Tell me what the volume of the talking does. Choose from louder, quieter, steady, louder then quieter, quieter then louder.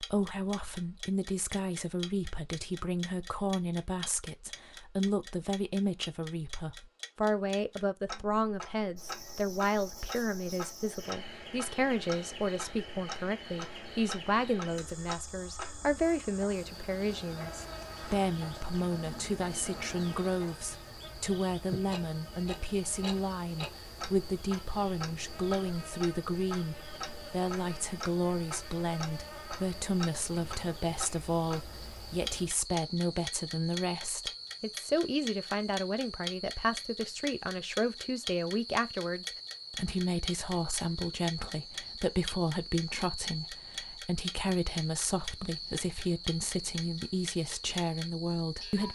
steady.